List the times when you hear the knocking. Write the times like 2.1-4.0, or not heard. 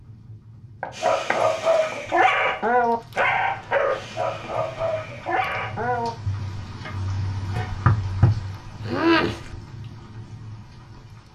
0.8-2.5, 7.5-9.5.